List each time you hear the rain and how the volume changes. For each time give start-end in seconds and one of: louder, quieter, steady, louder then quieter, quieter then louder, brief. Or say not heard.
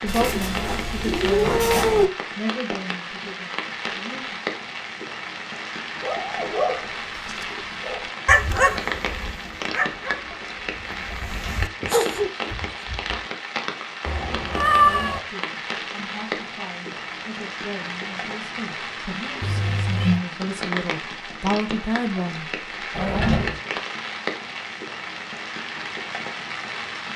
0.0-27.1 steady.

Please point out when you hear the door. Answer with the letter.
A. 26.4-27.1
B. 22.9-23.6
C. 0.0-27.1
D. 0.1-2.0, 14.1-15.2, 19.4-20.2
B.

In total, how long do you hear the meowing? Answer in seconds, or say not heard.
4 s.